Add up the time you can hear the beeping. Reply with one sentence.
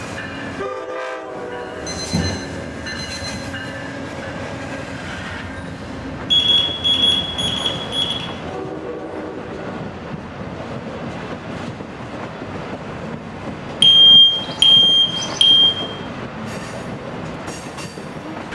The beeping can be heard for 6 seconds in total.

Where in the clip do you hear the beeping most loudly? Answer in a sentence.
The volume of the beeping peaks at 14 seconds.